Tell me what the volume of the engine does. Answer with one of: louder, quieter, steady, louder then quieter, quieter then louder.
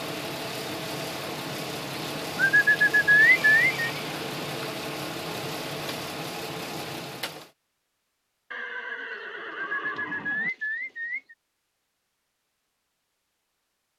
steady.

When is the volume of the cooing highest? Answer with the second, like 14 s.
3 s.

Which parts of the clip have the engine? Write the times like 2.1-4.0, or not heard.
0.0-7.5.